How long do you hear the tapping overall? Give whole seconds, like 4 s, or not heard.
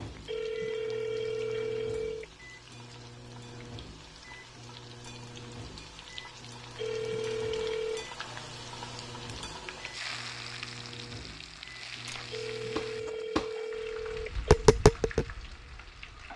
4 s.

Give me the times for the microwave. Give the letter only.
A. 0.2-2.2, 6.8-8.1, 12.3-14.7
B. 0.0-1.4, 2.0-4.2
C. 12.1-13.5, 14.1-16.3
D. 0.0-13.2
D.